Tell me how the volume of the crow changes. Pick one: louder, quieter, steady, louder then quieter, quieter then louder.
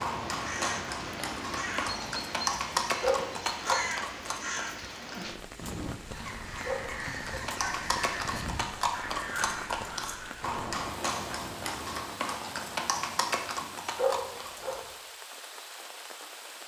steady.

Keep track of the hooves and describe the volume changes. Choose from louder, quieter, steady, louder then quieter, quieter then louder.
steady.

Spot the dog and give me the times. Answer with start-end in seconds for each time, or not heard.
3.0-3.9, 6.6-7.5, 13.9-14.8.